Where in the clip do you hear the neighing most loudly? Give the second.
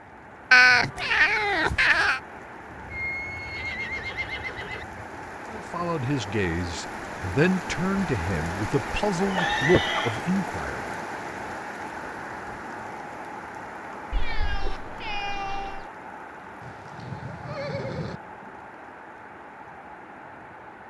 10 s.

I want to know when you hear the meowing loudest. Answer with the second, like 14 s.
1 s.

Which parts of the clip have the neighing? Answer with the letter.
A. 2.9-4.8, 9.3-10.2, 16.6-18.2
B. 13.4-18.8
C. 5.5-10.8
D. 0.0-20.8
A.